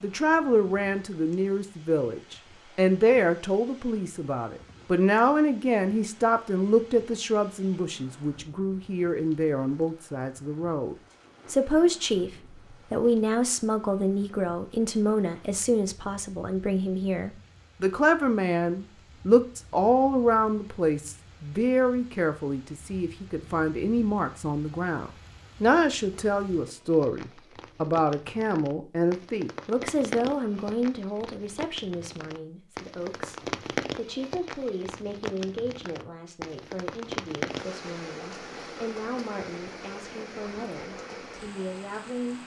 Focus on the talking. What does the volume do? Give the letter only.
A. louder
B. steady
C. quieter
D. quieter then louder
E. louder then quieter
C.